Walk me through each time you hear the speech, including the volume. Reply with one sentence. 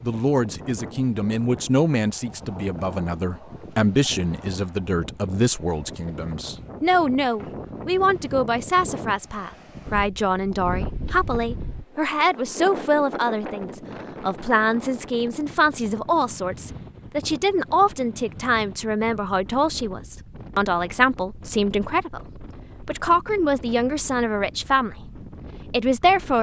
You can hear the speech from 0.0 to 26.3 s, at a steady volume.